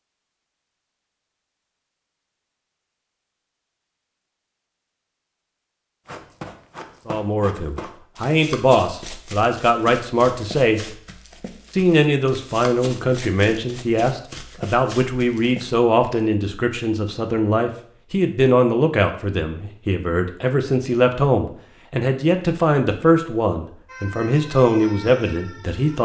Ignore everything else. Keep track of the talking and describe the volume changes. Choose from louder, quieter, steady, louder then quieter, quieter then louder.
steady.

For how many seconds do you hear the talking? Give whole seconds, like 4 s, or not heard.
18 s.